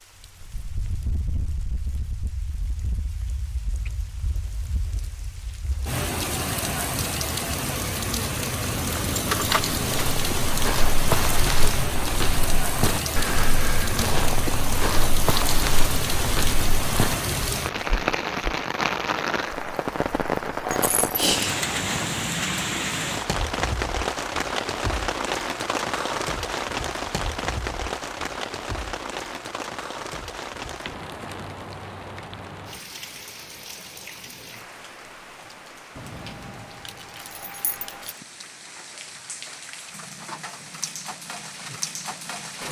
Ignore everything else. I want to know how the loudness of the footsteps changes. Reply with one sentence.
The loudness of the footsteps stays about the same.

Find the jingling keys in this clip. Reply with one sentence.
You can hear the jingling keys from 8.6 to 10.0 s, from 20.7 to 22.2 s and from 36.0 to 38.1 s.